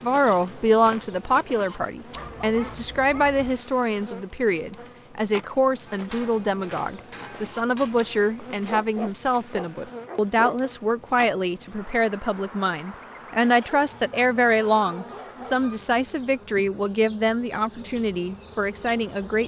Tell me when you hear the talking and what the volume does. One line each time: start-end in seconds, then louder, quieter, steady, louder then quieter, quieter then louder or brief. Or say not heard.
0.0-19.4 steady.